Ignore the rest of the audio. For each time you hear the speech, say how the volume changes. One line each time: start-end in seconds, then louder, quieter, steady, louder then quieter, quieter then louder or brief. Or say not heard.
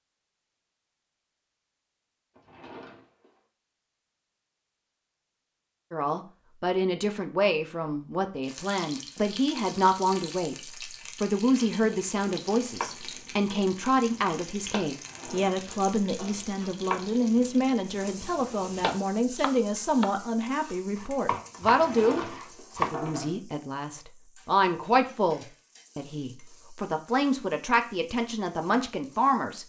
5.9-29.6 steady.